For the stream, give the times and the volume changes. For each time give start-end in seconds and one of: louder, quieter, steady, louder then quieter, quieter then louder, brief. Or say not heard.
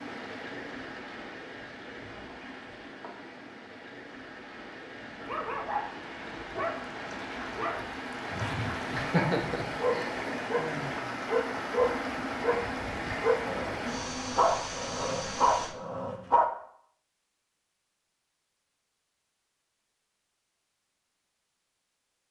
0.0-15.8 louder.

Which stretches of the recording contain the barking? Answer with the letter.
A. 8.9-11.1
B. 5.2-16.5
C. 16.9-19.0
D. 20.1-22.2
B.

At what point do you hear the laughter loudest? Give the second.
9 s.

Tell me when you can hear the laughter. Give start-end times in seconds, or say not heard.
8.9-11.1.